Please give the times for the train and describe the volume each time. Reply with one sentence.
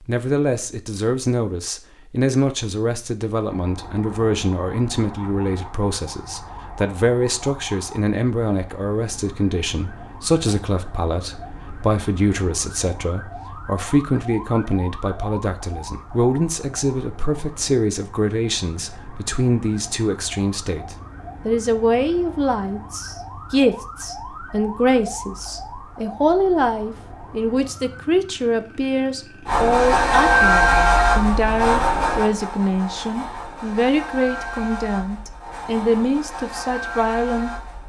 The train can be heard from 29.4 to 37.8 s, getting quieter.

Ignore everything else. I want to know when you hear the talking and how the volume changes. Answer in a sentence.
The talking can be heard from 0.1 to 37.5 s, at a steady volume.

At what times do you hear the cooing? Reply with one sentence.
The cooing can't be heard in this clip.